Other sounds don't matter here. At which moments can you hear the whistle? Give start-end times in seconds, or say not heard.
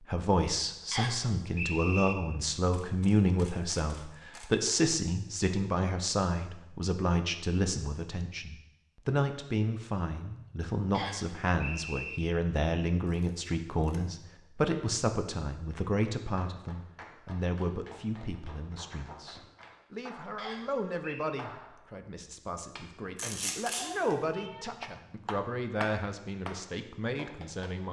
0.9-2.1, 10.9-12.2, 20.4-21.3.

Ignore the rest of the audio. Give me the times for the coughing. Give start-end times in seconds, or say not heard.
not heard.